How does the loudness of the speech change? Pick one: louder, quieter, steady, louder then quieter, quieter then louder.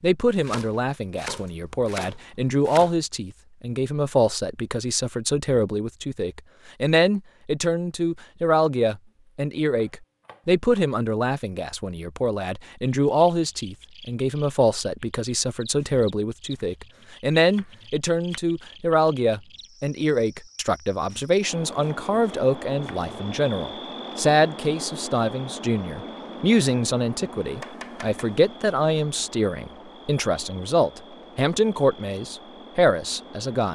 steady.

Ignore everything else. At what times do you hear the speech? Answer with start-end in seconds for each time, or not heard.
0.0-33.7.